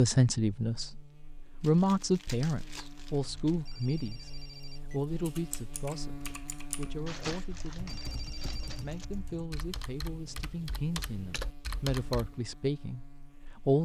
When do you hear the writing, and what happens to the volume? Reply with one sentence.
The writing can't be heard in this clip.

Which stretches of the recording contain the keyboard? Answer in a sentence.
You can hear the keyboard from 5.2 to 12.4 s.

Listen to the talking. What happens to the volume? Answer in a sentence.
The volume of the talking goes down, then up.